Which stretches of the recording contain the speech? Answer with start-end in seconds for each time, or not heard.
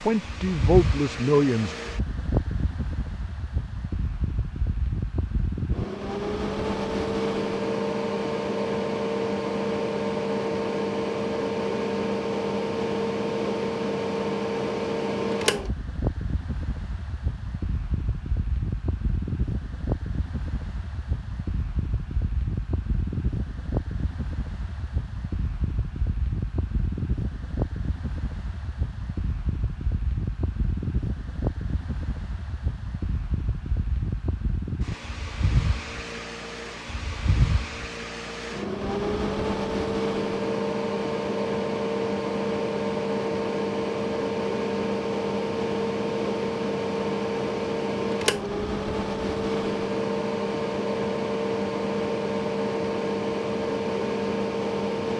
0.0-1.8.